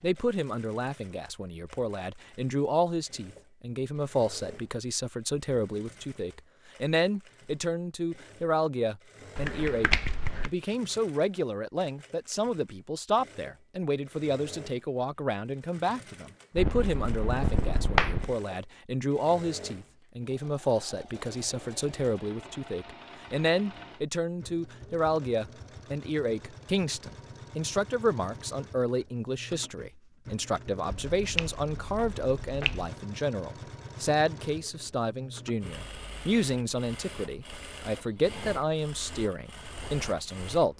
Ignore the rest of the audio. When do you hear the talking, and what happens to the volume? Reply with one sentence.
You can hear the talking from 0.0 to 40.7 s, at a steady volume.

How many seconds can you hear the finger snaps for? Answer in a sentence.
You can hear the finger snaps for 5 seconds altogether.